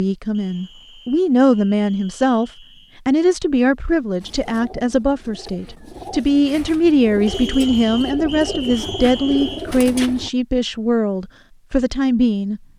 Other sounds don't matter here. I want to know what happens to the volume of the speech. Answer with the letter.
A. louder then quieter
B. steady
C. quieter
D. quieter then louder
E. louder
B.